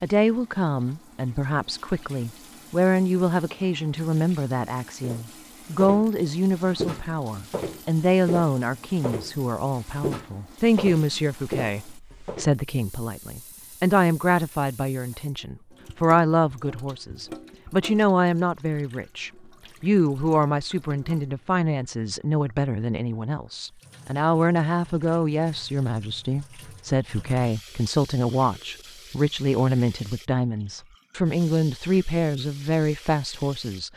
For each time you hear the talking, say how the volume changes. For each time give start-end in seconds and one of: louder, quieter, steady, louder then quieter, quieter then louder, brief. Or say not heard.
0.0-33.9 steady.